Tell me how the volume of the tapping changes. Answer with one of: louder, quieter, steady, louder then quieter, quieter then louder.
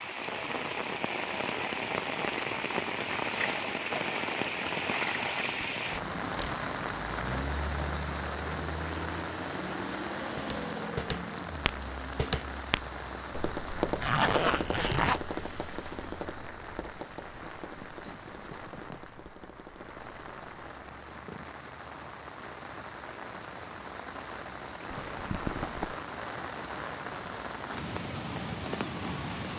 quieter.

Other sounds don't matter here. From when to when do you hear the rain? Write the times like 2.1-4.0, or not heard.
0.0-29.5.